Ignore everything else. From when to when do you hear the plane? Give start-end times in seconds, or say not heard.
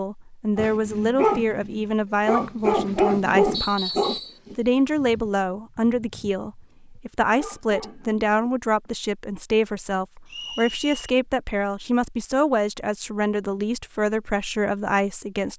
not heard.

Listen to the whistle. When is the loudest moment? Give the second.
4 s.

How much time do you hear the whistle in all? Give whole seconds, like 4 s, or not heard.
2 s.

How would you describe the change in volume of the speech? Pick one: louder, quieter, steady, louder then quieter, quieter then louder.
steady.